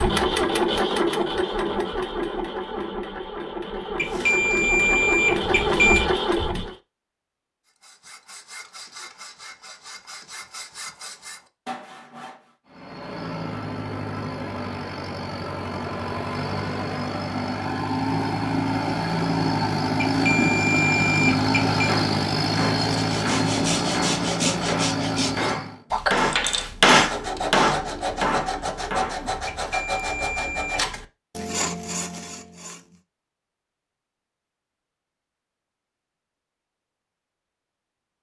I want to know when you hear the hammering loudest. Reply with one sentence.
The volume of the hammering peaks at 27 seconds.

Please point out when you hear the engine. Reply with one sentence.
The engine can be heard from 0.0 to 6.8 s and from 12.7 to 25.8 s.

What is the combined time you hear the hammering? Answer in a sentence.
The hammering can be heard for 7 seconds in total.